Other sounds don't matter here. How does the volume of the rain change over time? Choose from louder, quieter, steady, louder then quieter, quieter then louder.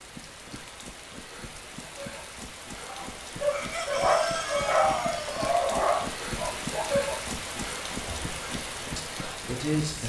louder.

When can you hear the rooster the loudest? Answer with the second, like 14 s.
4 s.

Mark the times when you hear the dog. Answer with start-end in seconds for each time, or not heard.
1.9-7.4.